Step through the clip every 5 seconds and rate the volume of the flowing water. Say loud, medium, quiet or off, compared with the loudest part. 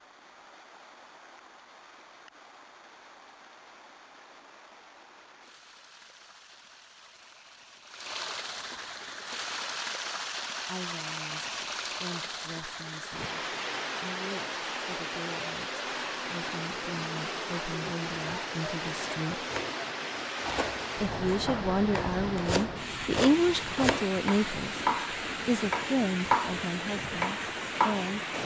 quiet, medium, loud, loud, loud, loud.